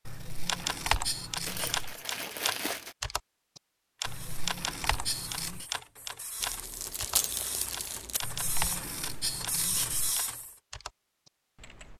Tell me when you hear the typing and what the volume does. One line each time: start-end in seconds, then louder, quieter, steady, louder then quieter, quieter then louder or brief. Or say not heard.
0.5-11.9 quieter.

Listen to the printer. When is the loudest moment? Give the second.
10 s.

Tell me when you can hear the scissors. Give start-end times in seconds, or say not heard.
0.1-1.9, 4.0-5.7, 8.2-10.2.